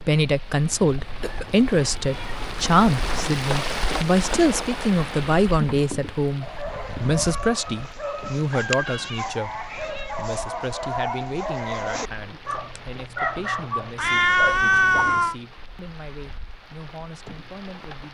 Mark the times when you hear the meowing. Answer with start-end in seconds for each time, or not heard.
0.7-2.6, 8.8-10.2, 13.9-15.3.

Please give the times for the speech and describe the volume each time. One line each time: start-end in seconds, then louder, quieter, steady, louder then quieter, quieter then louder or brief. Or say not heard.
0.0-18.0 quieter.